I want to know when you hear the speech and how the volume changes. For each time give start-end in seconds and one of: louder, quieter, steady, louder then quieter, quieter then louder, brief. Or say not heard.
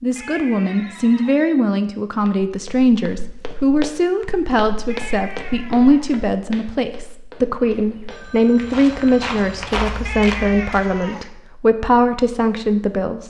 0.0-13.2 steady.